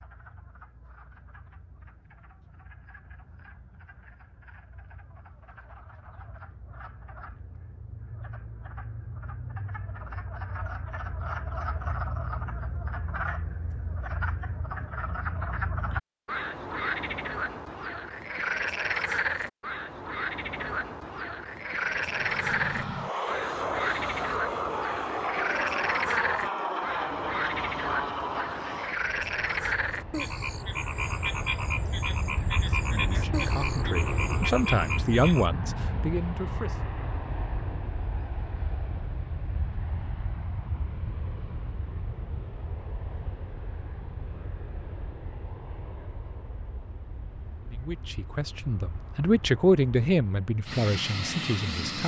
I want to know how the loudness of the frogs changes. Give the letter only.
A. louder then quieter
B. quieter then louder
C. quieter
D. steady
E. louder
E.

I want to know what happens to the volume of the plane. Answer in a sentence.
The volume of the plane goes down.